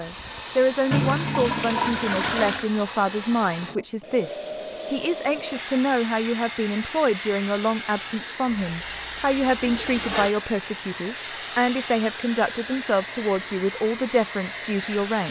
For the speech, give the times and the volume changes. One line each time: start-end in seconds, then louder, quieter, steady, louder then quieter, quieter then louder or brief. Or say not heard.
0.0-15.2 steady.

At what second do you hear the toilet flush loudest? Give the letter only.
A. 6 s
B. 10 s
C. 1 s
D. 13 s
C.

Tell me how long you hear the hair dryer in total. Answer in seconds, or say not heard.
15 s.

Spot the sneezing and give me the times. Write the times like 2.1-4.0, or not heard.
not heard.